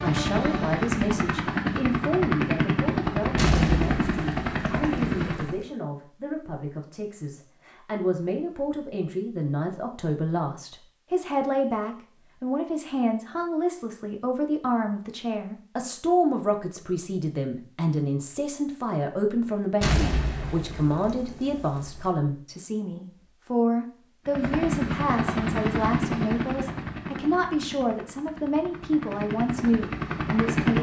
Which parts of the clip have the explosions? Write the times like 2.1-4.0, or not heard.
3.4-5.6, 19.8-22.0.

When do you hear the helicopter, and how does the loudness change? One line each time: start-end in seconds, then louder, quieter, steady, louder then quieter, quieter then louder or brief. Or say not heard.
0.0-5.5 steady
24.2-30.7 quieter then louder.